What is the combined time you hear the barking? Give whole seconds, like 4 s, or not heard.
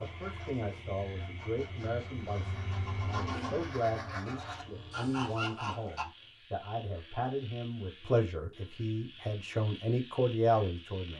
not heard.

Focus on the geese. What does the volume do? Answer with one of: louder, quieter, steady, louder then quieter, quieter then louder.
louder.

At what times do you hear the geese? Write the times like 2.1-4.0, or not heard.
0.0-6.0.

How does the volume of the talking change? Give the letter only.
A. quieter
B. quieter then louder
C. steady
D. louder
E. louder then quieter
D.